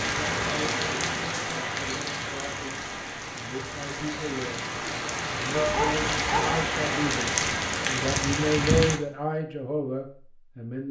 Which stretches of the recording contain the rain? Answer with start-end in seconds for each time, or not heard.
0.0-9.0.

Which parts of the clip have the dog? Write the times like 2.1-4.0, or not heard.
5.5-6.6.